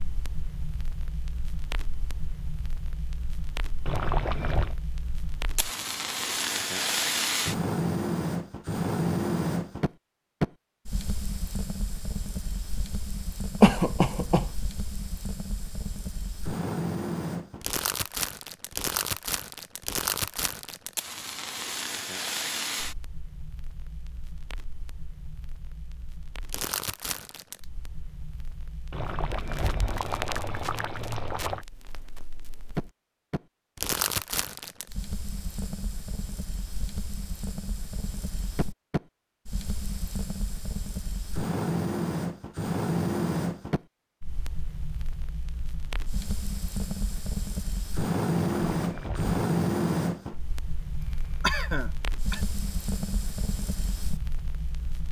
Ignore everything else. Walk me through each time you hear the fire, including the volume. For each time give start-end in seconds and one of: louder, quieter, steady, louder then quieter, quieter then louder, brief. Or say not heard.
0.0-55.0 quieter then louder.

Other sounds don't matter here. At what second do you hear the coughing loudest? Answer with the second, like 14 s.
14 s.